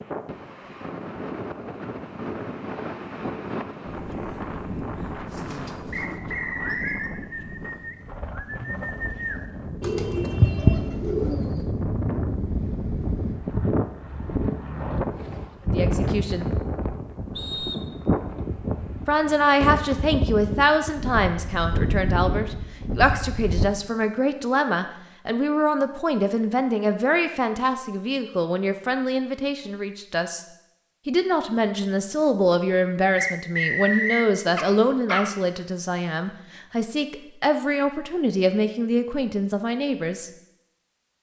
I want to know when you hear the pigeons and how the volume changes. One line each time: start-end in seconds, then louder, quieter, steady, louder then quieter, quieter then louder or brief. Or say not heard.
5.2-11.8 louder.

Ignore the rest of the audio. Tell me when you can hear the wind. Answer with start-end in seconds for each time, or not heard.
0.0-23.7.